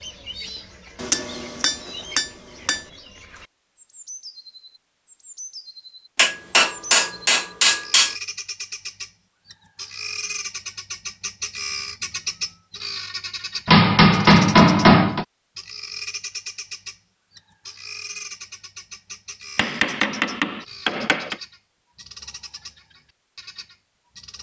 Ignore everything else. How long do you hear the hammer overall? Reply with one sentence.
You can hear the hammer for 7 seconds altogether.